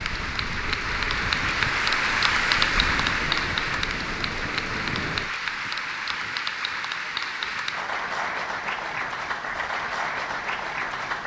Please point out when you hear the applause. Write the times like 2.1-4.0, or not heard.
0.0-11.2.